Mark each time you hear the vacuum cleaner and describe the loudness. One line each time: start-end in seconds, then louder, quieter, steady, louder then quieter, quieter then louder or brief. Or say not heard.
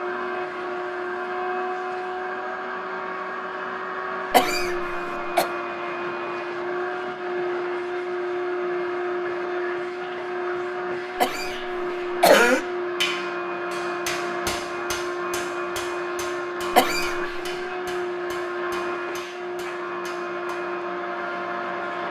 0.0-22.0 steady.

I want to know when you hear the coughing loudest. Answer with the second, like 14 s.
12 s.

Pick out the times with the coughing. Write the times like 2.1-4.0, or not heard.
4.3-5.5, 11.2-12.7, 16.7-17.3.